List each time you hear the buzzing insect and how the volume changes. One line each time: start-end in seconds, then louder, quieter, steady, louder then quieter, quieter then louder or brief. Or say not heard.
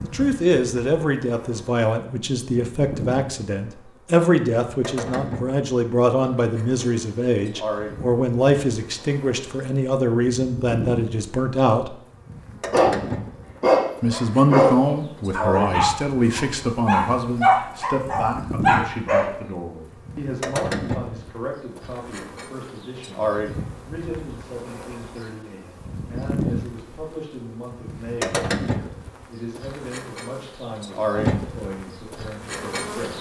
0.0-33.1 louder.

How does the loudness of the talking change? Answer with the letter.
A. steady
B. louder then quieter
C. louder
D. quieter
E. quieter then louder
D.